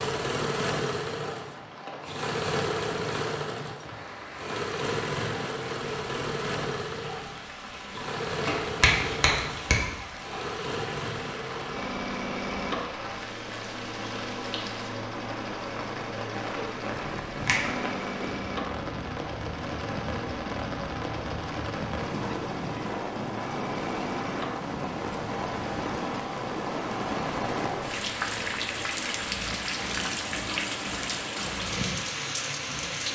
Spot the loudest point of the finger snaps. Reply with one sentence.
The volume of the finger snaps peaks at 9 seconds.